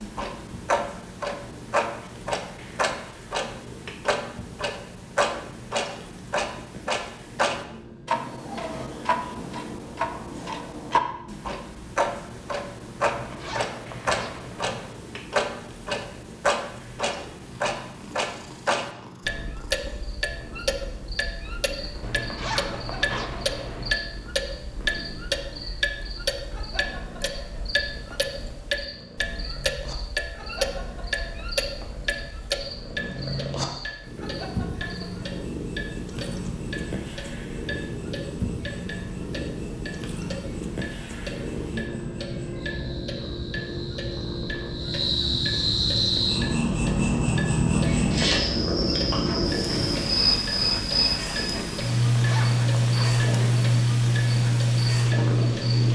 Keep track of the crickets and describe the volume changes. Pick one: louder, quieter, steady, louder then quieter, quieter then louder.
louder.